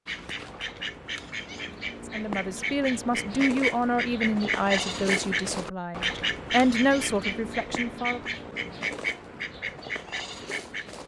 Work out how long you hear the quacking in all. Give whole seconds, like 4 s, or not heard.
11 s.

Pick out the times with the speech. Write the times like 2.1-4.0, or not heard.
2.1-8.2.